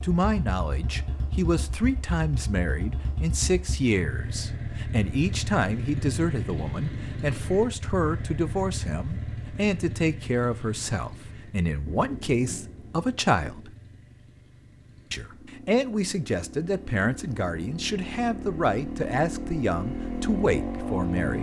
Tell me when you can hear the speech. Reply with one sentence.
The speech can be heard from 0.0 to 13.7 s and from 15.1 to 21.3 s.